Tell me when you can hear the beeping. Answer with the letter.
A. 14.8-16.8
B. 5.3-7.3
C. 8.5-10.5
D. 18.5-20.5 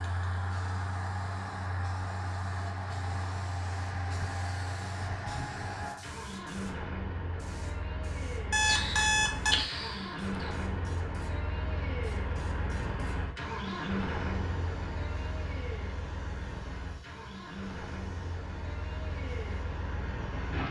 C.